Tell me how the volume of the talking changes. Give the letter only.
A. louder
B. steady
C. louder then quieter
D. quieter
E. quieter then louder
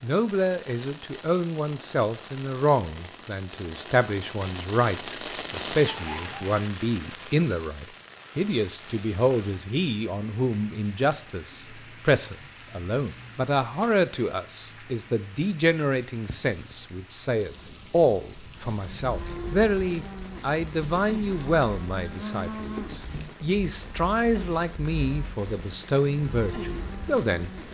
B.